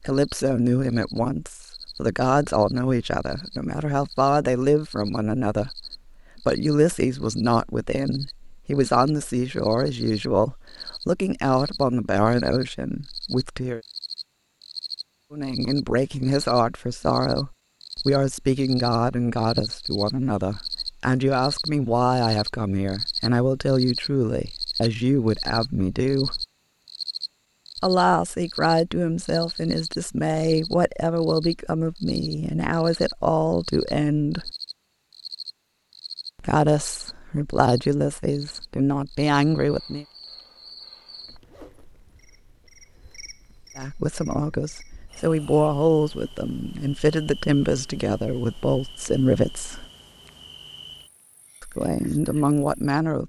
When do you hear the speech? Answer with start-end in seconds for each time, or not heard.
0.0-13.8, 15.3-26.4, 27.8-34.5, 36.4-40.0, 43.8-49.9, 51.6-53.2.